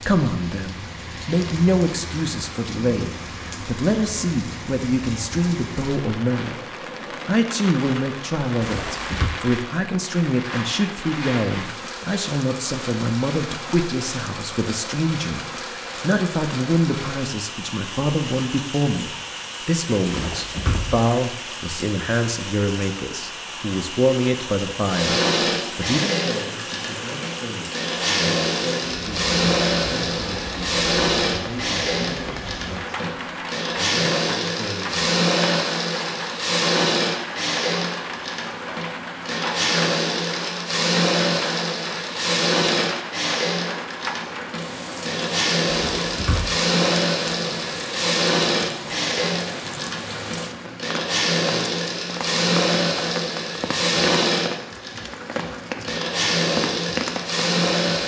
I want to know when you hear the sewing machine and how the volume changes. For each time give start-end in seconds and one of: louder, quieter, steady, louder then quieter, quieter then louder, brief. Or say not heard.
24.9-58.0 steady.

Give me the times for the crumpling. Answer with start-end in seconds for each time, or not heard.
8.6-9.3, 20.1-21.1, 45.6-46.5.